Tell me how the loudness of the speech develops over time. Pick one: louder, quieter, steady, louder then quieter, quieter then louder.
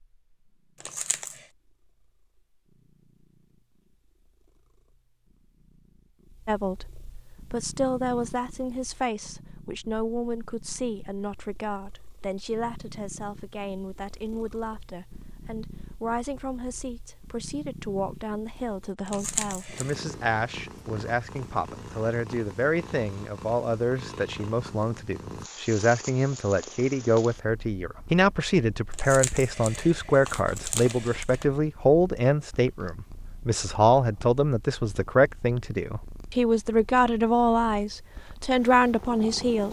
louder.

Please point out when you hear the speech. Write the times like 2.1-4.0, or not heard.
6.5-39.6.